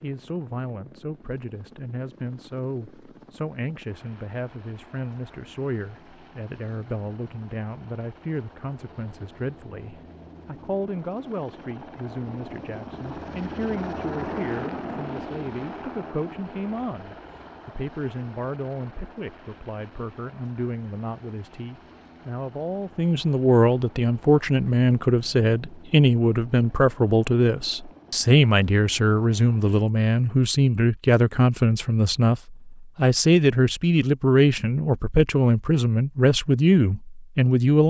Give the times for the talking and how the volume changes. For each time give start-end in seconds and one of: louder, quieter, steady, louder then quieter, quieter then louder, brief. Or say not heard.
0.0-37.8 louder.